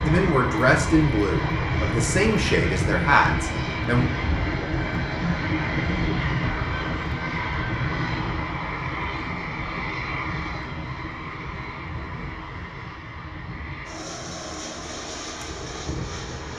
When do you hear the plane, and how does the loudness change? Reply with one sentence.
You can hear the plane from 0.0 to 16.5 s, getting quieter.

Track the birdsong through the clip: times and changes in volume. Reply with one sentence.
You can't hear the birdsong here.